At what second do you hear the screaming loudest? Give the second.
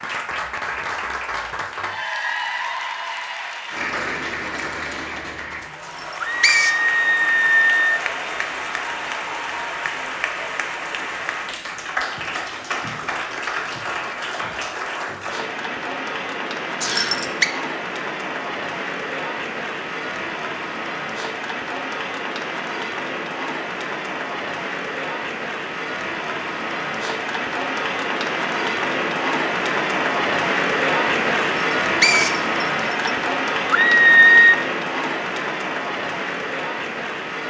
34 s.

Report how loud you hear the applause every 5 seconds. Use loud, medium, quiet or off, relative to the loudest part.
medium, medium, medium, medium, medium, loud, loud, medium.